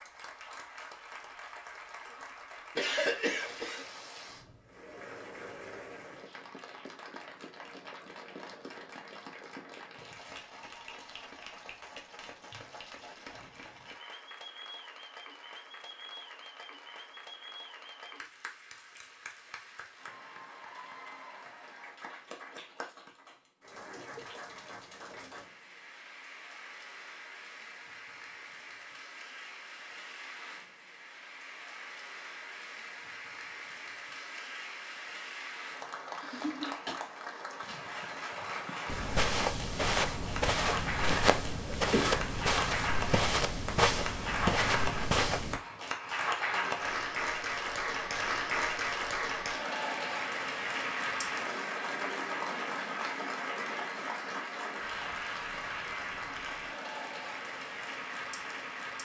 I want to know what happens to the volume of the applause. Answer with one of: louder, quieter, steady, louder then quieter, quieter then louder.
louder.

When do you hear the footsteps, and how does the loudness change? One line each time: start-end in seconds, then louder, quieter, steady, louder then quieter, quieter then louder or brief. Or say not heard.
38.9-45.6 steady.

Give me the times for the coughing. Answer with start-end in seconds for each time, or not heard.
2.8-3.9, 36.0-37.0, 41.0-42.3.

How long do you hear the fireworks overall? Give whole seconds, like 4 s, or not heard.
not heard.